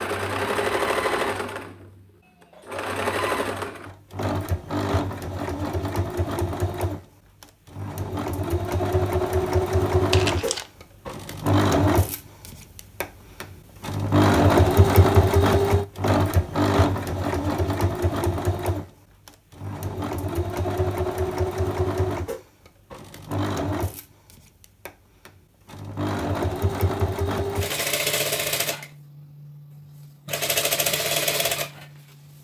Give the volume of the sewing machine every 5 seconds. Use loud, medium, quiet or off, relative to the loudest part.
medium, medium, loud, loud, medium, medium, medium.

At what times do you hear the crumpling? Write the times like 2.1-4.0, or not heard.
10.1-10.7.